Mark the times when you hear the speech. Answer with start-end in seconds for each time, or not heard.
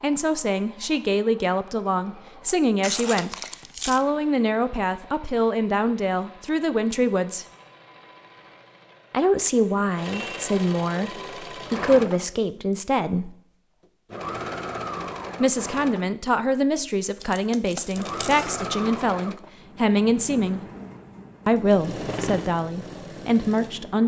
0.0-7.5, 9.1-13.3, 15.4-20.6, 21.4-24.0.